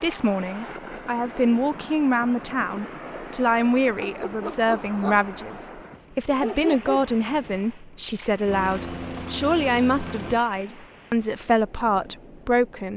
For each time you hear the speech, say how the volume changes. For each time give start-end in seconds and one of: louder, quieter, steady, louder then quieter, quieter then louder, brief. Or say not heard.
0.0-12.9 steady.